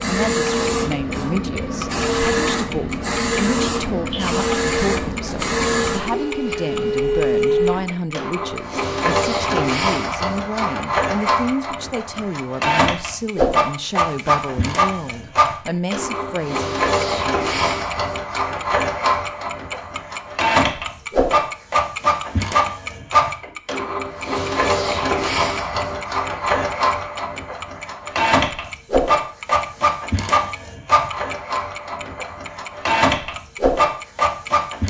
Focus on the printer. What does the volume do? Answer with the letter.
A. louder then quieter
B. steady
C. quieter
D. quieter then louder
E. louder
B.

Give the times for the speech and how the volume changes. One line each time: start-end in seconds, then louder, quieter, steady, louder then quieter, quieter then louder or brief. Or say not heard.
0.1-16.8 steady.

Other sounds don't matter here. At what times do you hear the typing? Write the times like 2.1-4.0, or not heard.
not heard.